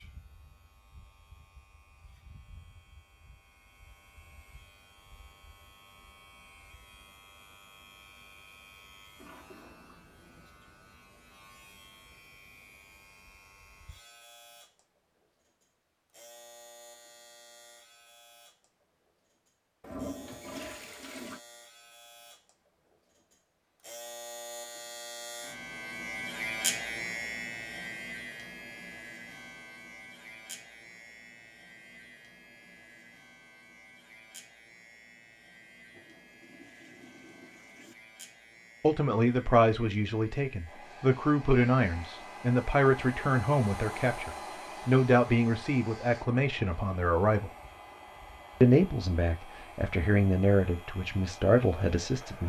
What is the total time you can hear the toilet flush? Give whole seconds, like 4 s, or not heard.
5 s.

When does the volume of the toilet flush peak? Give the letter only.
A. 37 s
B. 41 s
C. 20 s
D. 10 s
C.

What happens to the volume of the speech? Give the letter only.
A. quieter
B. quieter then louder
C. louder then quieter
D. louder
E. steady
E.